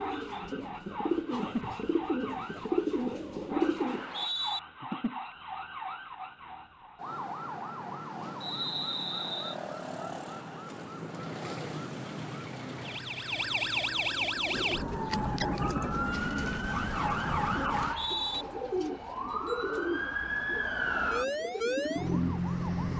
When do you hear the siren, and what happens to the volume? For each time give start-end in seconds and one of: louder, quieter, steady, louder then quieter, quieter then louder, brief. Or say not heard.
0.0-22.9 louder.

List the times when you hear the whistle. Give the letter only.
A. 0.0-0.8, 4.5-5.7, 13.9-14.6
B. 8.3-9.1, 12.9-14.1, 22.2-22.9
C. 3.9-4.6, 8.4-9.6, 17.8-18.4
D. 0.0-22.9
C.